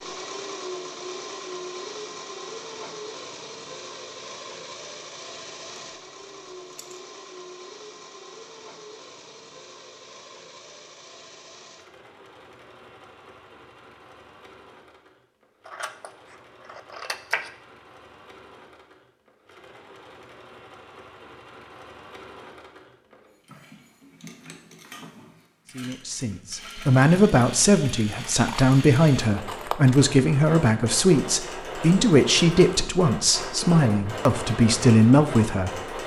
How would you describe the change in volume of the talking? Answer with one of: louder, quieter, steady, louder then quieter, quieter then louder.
steady.